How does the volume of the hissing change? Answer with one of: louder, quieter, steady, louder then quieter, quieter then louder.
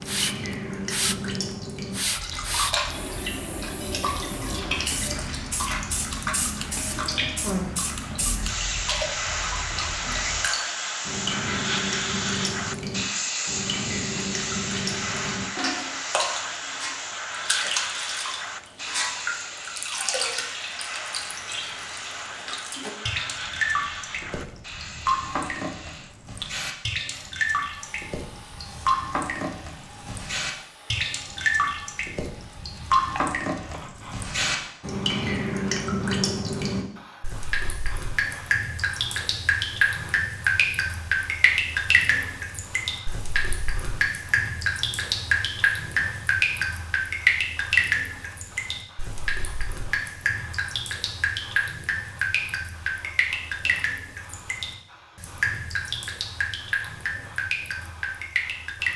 quieter.